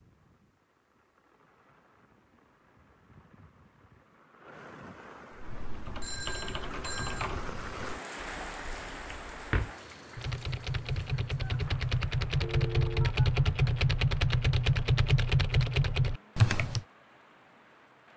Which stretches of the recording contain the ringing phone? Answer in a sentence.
The ringing phone can be heard from 6.0 to 7.3 s and from 12.4 to 13.2 s.